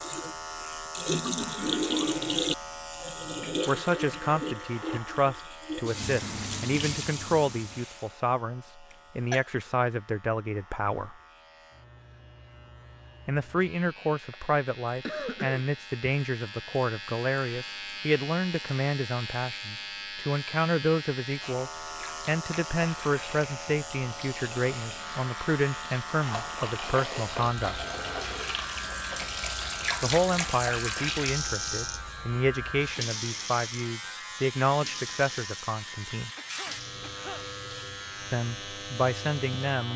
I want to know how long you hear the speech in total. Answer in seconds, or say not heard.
30 s.